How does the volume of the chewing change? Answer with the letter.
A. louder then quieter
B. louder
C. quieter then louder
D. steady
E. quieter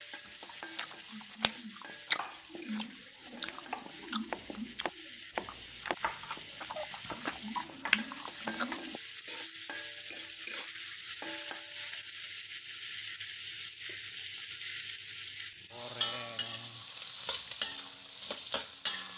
C.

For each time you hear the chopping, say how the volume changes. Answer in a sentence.
The chopping can be heard from 2.1 to 8.8 s, getting louder then quieter.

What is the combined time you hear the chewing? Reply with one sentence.
The chewing can be heard for 8 seconds in total.